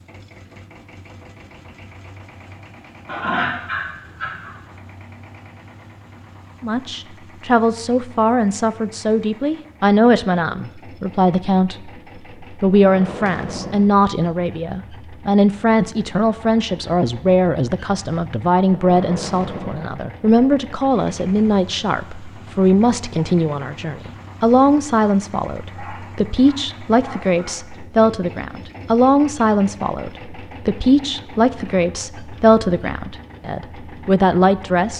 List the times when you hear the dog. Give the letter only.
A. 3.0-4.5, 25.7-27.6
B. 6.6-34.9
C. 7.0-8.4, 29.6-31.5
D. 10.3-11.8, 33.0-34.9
A.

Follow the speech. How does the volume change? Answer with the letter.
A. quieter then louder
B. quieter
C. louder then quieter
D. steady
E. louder
D.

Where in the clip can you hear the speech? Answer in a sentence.
You can hear the speech from 6.6 to 34.9 s.